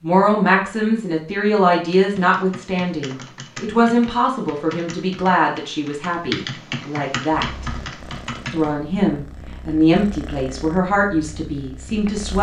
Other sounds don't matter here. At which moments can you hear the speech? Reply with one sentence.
The speech can be heard from 0.0 to 7.7 s and from 8.5 to 12.3 s.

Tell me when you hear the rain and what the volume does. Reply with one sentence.
You can't hear the rain here.